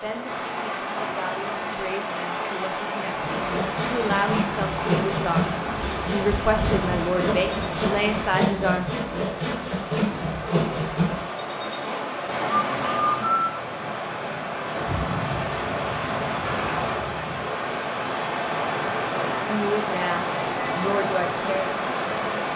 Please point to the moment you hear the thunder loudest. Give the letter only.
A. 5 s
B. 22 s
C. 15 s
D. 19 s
C.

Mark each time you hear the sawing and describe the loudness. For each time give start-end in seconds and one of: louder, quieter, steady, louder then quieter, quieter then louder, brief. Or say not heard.
3.0-12.0 steady.